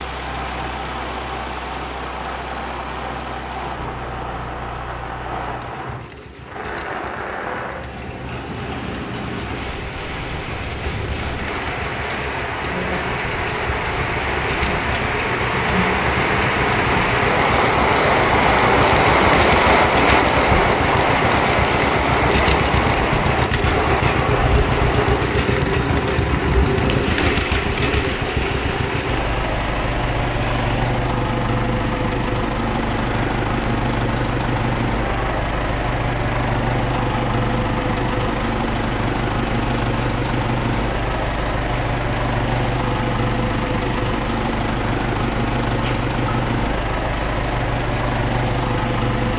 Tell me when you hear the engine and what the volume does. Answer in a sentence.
The engine can be heard from 0.0 to 49.3 s, getting louder.